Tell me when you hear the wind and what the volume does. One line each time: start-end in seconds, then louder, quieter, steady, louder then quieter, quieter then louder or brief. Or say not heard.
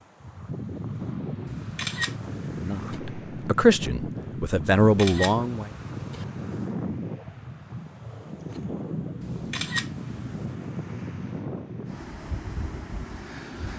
0.0-13.7 steady.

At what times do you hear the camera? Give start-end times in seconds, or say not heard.
1.4-3.0, 4.7-6.2, 9.2-10.5.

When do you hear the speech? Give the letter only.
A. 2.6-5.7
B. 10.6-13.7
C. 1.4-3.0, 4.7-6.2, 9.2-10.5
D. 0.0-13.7
A.